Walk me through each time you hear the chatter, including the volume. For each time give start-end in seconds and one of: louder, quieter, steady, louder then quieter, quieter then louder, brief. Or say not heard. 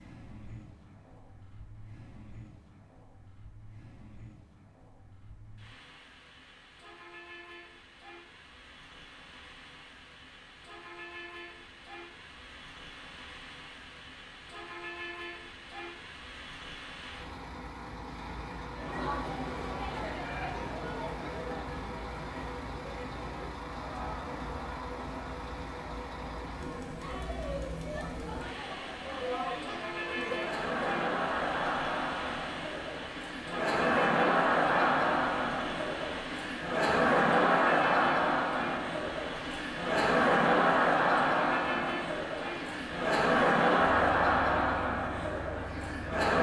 18.7-46.3 louder.